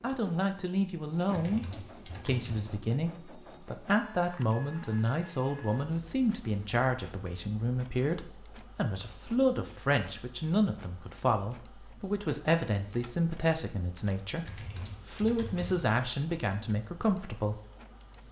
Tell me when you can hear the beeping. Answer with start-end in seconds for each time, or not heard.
not heard.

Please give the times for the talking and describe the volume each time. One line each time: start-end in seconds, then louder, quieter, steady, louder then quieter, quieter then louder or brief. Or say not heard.
0.0-1.6 brief
2.2-14.4 steady
15.1-17.6 brief.